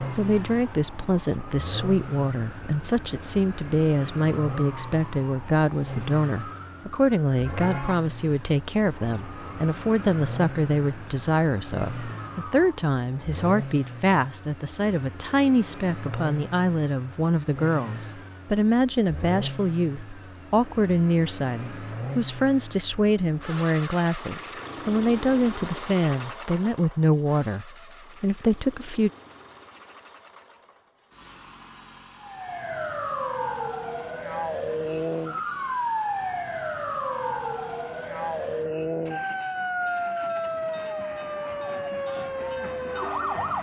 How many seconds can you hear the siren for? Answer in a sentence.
You can hear the siren for 24 seconds altogether.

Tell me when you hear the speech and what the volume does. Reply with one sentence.
The speech can be heard from 0.0 to 29.1 s, at a steady volume.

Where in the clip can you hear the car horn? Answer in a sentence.
The car horn can't be heard in this clip.